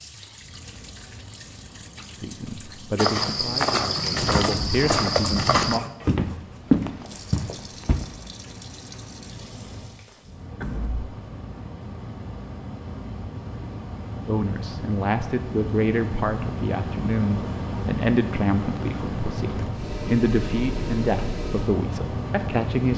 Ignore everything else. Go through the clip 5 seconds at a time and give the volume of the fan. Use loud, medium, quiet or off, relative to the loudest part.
quiet, quiet, medium, loud, loud.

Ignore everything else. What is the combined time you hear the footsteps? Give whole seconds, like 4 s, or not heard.
5 s.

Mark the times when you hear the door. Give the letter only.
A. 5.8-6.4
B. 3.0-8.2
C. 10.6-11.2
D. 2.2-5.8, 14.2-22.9
C.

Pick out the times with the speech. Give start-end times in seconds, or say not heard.
2.2-5.8, 14.2-22.9.